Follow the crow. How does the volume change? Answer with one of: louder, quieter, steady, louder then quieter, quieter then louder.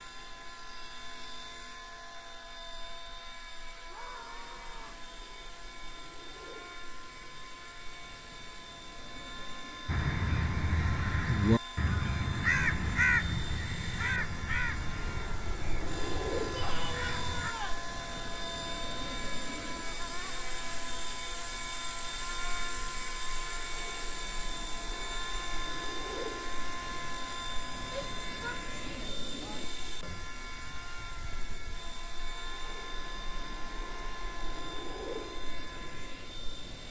quieter.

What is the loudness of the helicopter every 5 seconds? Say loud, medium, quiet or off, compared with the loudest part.
medium, medium, medium, loud, loud, loud, medium, medium.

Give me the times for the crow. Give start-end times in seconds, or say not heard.
9.8-17.6.